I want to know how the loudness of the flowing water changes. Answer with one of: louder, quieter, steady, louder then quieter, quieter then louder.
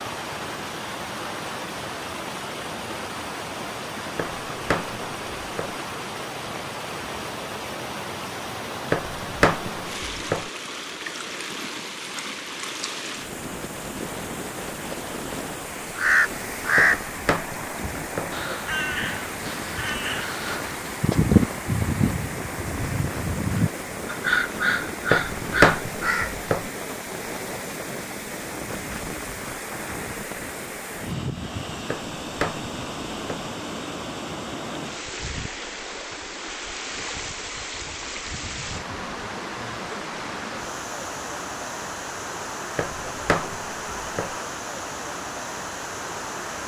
steady.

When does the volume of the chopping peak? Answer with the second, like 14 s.
26 s.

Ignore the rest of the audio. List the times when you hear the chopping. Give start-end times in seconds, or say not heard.
4.2-5.8, 8.9-10.5, 16.8-18.4, 25.1-26.6, 31.9-33.5, 42.8-44.4.